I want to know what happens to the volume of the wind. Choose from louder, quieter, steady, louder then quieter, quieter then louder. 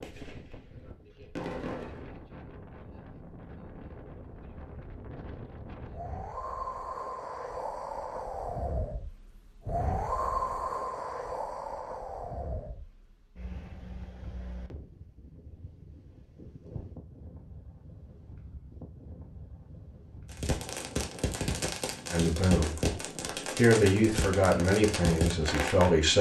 louder then quieter.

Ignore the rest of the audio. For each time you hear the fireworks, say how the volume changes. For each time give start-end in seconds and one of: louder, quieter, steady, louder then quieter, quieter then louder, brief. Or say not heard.
0.0-2.2 brief
20.3-25.9 steady.